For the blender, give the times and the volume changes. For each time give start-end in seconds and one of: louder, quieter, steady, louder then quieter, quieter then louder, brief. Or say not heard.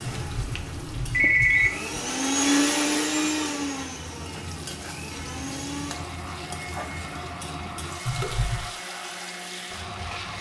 0.0-10.3 louder then quieter.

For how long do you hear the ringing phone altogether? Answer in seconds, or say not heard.
2 s.